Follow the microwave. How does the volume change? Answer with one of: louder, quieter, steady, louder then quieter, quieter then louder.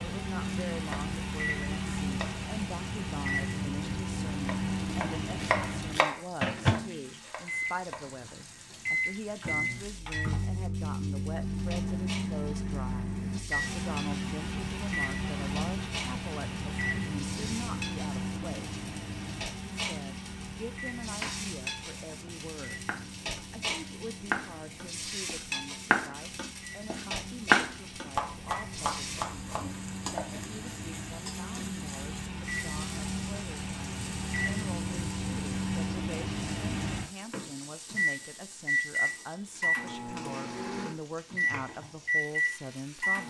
quieter then louder.